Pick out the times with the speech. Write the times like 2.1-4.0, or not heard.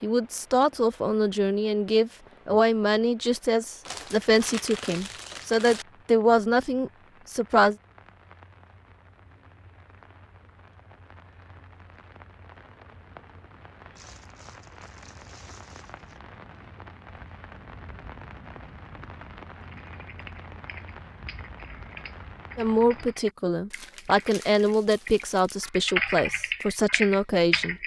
0.0-7.8, 22.6-27.8.